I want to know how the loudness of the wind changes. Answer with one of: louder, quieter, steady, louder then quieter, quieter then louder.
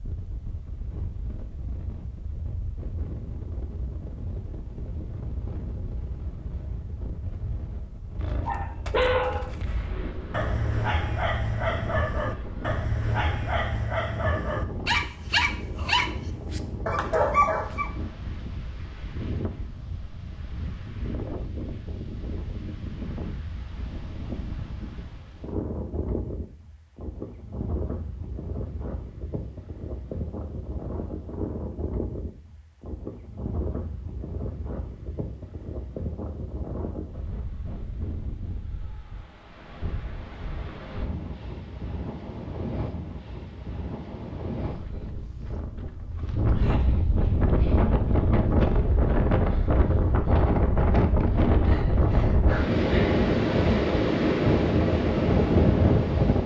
louder.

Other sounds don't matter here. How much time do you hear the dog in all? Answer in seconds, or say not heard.
10 s.